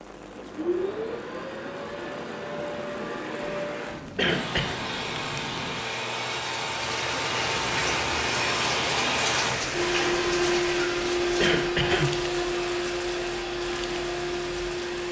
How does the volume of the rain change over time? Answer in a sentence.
The loudness of the rain goes up, then down.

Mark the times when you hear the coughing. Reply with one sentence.
The coughing can be heard from 4.2 to 4.8 s and from 11.4 to 12.2 s.